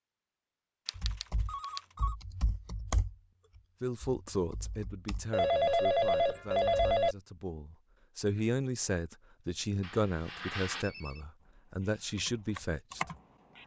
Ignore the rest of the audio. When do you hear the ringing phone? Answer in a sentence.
The ringing phone can be heard from 0.8 to 2.1 s, from 5.3 to 7.2 s and from 9.8 to 11.2 s.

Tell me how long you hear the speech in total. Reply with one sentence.
The speech can be heard for 9 seconds in total.